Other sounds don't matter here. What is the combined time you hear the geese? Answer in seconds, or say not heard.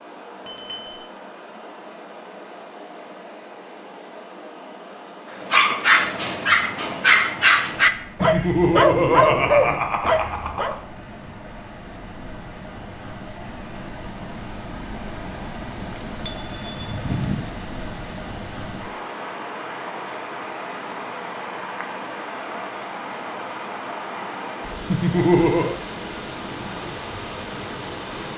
not heard.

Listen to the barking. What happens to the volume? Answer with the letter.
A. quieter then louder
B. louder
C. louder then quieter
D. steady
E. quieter
D.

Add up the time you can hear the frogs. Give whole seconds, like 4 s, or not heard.
not heard.